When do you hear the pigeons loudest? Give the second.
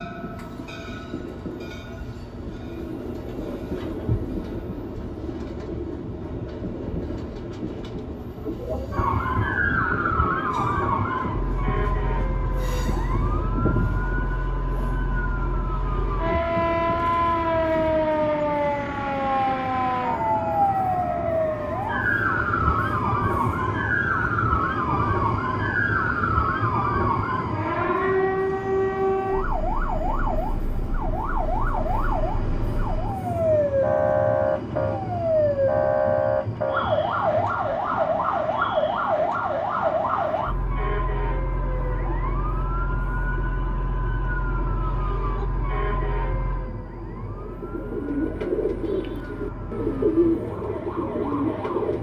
50 s.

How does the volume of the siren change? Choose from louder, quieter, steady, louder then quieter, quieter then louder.
quieter.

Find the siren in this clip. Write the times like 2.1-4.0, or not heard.
8.9-51.9.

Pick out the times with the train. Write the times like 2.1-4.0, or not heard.
0.0-51.9.